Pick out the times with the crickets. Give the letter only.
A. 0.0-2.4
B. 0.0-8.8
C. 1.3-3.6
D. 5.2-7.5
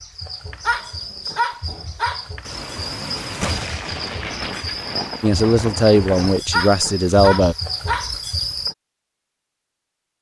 B.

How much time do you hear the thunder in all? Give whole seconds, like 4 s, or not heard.
4 s.